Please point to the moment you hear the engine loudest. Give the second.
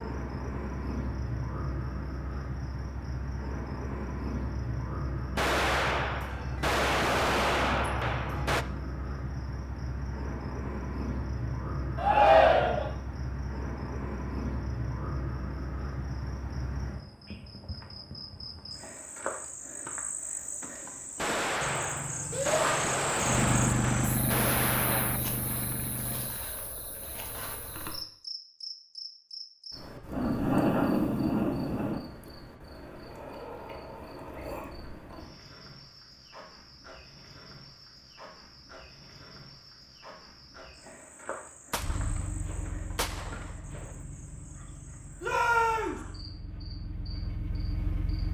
24 s.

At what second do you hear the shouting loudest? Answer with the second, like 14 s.
12 s.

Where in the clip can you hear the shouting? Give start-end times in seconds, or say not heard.
11.9-12.9, 22.3-22.8, 45.2-46.0.